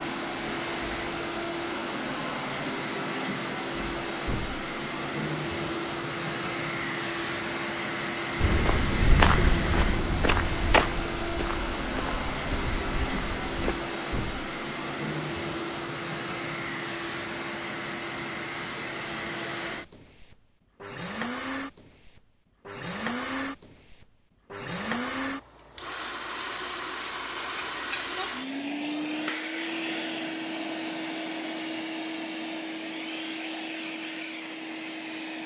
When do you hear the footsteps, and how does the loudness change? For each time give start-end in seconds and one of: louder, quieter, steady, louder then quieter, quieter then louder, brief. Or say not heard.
8.4-13.8 quieter.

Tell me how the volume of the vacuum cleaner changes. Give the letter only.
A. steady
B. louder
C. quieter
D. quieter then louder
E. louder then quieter
A.